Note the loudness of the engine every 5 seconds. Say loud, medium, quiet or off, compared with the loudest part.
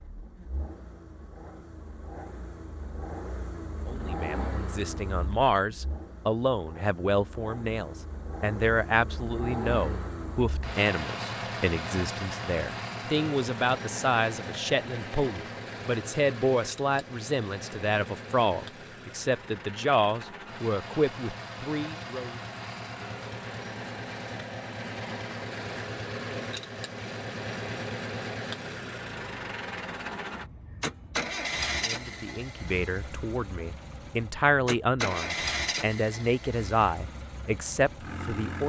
medium, medium, loud, medium, loud, loud, loud, loud.